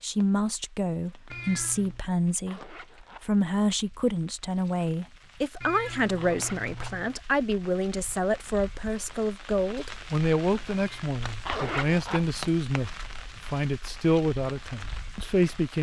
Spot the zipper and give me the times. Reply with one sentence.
The zipper can be heard from 2.5 to 3.2 s, from 6.2 to 7.0 s and from 11.4 to 12.2 s.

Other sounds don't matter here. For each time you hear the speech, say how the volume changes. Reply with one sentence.
You can hear the speech from 0.0 to 15.7 s, at a steady volume.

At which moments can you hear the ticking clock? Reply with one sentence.
You can't hear the ticking clock here.